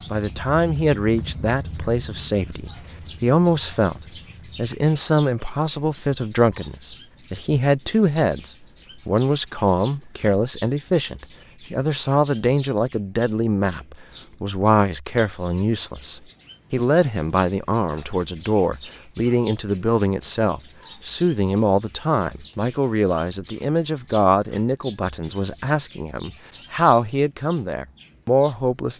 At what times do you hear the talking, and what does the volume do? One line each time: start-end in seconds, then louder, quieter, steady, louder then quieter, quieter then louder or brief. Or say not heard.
0.1-28.9 steady.